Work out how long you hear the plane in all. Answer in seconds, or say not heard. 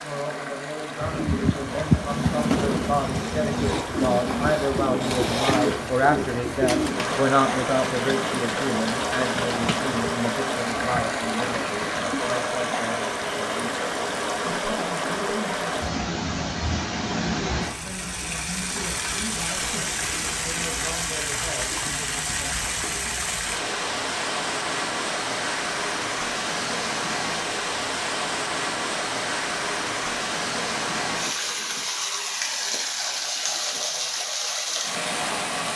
not heard.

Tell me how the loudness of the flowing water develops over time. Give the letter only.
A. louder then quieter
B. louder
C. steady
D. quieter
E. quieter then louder
B.